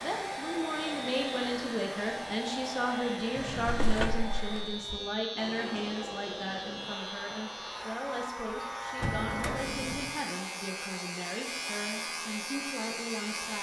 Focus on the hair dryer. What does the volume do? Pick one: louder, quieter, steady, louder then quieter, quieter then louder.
quieter.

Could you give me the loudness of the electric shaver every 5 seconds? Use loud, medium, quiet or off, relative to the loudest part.
medium, loud, loud.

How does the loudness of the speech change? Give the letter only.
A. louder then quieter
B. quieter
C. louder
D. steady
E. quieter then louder
B.